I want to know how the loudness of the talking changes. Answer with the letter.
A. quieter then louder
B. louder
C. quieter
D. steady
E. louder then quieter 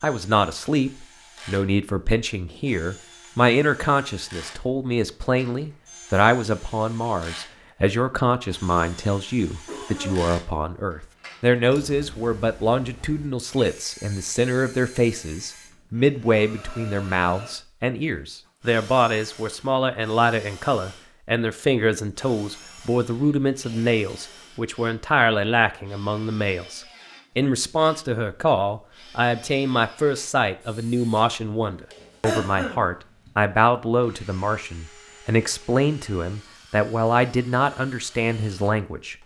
D.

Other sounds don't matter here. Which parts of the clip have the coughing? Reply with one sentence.
The coughing can be heard from 9.7 to 10.2 s, from 23.1 to 24.4 s and from 32.2 to 33.3 s.